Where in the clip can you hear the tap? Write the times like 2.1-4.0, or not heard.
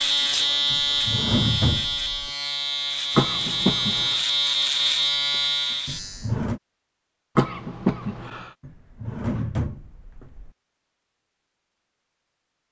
not heard.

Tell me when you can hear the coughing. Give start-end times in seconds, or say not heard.
3.1-4.2, 7.3-8.5.